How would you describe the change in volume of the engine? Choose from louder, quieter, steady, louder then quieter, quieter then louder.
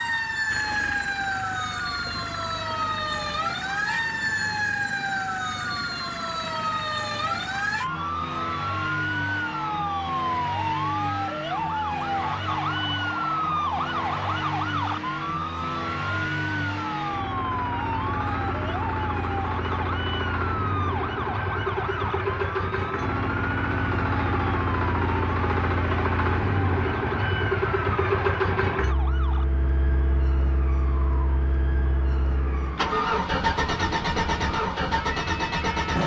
louder.